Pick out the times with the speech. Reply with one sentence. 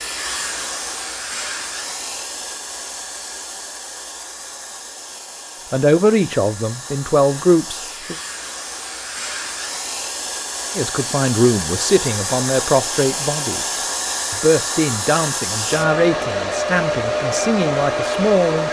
The speech can be heard from 5.7 to 8.2 s and from 10.8 to 18.6 s.